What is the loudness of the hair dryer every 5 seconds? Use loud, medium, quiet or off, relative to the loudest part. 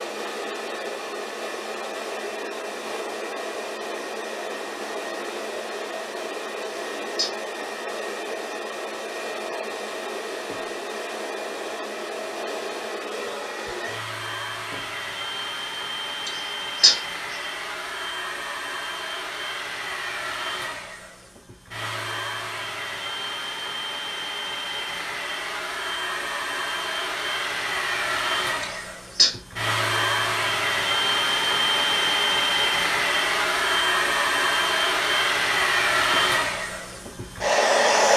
medium, medium, medium, medium, medium, medium, loud, loud.